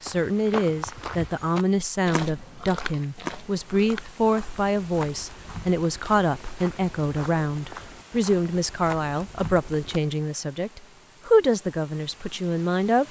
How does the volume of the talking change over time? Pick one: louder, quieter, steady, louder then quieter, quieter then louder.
steady.